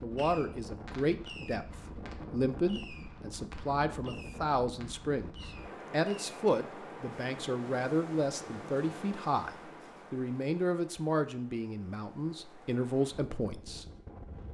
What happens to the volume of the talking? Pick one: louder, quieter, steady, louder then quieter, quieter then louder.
steady.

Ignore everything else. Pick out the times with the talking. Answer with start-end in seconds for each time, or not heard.
0.0-13.8.